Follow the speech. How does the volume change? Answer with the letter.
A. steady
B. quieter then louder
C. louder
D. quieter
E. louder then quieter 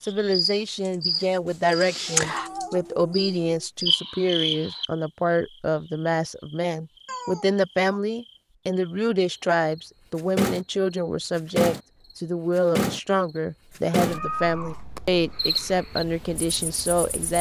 A.